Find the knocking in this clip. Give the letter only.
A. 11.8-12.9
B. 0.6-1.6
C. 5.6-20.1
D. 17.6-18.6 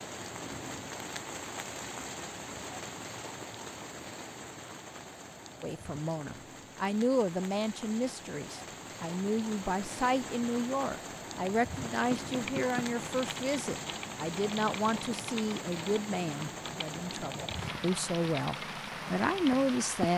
A.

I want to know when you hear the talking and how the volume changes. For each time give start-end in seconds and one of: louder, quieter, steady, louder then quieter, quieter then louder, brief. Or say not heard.
5.6-20.1 steady.